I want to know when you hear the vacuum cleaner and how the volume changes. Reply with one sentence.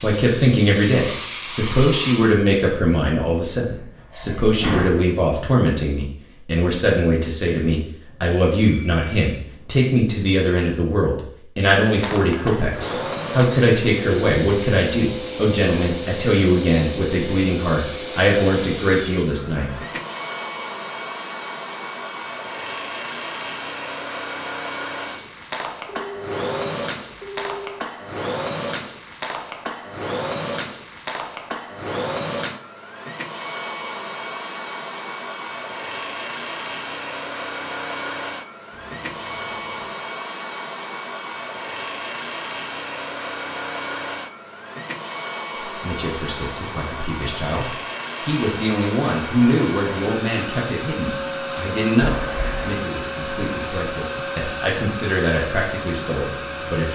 You can hear the vacuum cleaner briefly from 0.0 to 2.4 s; and from 11.8 to 56.8 s, at a steady volume.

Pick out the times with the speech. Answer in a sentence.
You can hear the speech from 0.0 to 19.7 s and from 45.6 to 56.8 s.